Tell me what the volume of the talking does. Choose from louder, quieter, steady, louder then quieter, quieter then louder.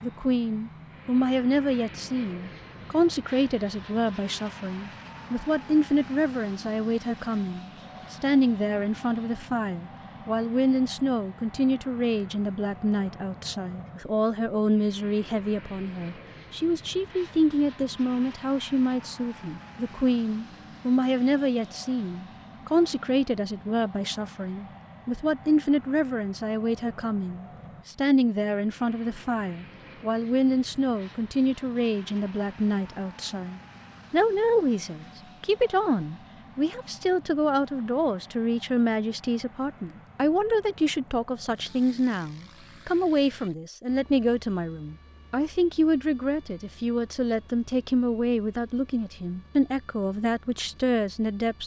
steady.